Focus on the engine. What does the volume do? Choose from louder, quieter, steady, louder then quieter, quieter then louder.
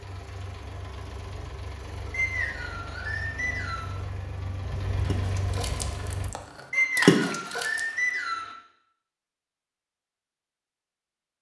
louder.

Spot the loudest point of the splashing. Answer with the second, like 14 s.
7 s.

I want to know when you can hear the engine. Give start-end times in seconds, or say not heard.
0.0-6.3.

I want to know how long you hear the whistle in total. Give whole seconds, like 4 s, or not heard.
4 s.